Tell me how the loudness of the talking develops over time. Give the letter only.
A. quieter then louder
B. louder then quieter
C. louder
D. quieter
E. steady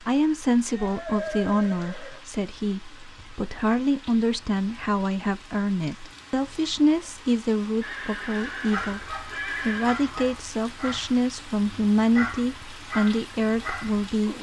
E.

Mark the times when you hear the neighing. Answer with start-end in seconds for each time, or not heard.
0.7-2.2, 7.8-10.0.